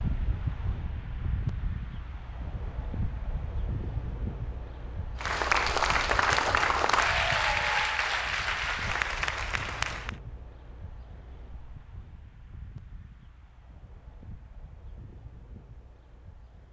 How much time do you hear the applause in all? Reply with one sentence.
You can hear the applause for 5 seconds altogether.